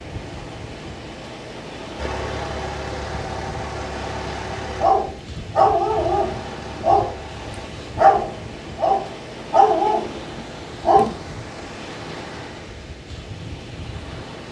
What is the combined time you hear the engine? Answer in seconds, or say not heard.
6 s.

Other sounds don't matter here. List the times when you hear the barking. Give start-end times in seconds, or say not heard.
4.8-7.2, 8.0-11.2.